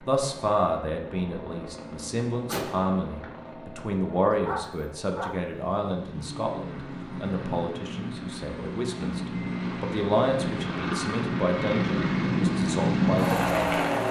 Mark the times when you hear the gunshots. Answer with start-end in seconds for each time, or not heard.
2.5-3.4.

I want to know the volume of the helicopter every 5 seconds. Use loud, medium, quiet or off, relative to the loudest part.
quiet, medium, loud.